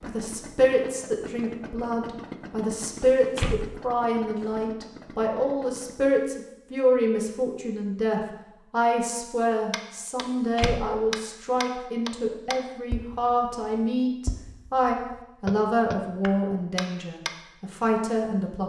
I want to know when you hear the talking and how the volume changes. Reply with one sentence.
The talking can be heard from 0.0 to 18.6 s, at a steady volume.